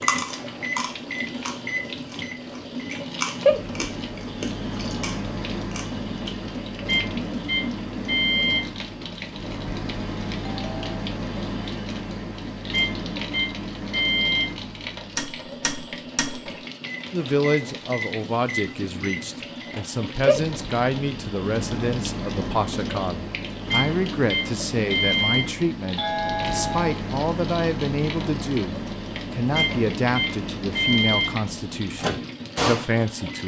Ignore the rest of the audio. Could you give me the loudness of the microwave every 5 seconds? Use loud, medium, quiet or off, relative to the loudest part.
loud, loud, loud, medium, loud, loud, loud.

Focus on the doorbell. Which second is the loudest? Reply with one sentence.
The loudest moment of the doorbell is at 26 seconds.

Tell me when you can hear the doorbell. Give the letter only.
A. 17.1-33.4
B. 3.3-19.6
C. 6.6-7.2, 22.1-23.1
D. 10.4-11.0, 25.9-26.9
D.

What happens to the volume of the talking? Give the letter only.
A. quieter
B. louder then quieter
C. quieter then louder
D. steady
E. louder
D.